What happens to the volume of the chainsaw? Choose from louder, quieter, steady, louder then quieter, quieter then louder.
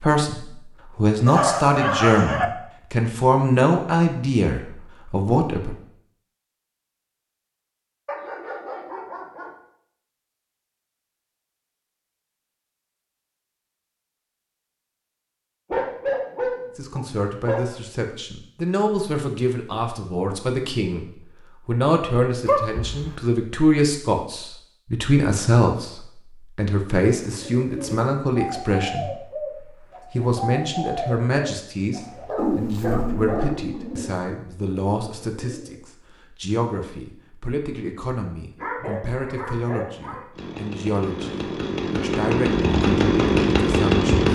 louder.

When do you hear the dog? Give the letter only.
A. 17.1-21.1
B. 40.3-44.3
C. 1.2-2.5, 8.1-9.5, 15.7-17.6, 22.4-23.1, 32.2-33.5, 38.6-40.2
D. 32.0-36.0
C.